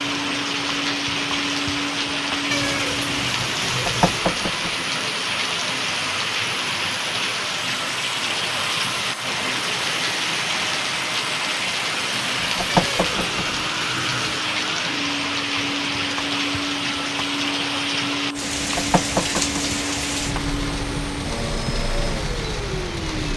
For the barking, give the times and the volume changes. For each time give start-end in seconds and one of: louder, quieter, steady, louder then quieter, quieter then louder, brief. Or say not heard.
not heard.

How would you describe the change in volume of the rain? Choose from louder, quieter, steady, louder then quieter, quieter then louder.
steady.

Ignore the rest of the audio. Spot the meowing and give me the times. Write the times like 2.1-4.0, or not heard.
2.5-4.2, 12.7-14.4.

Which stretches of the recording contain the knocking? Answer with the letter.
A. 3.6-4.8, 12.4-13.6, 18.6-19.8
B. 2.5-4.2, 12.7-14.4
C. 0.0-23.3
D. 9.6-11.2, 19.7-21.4
A.